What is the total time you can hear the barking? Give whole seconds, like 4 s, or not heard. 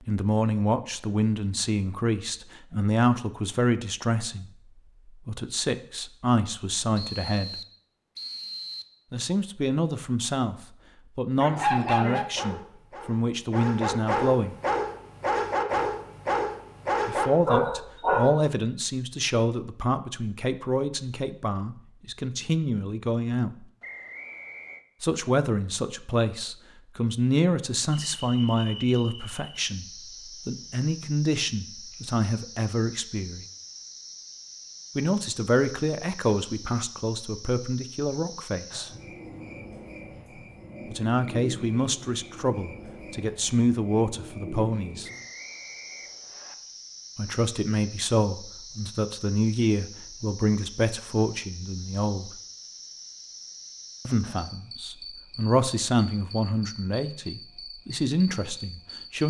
7 s.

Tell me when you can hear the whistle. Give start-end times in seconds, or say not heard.
7.0-8.9, 23.8-24.9, 45.0-46.5.